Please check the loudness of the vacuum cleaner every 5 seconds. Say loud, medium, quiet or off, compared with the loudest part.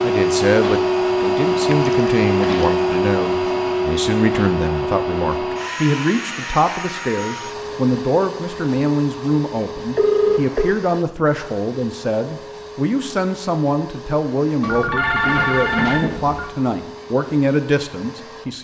loud, medium, quiet, quiet.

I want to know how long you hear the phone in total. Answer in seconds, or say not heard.
4 s.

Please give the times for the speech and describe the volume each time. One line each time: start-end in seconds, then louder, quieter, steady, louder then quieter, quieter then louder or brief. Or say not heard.
0.0-18.5 steady.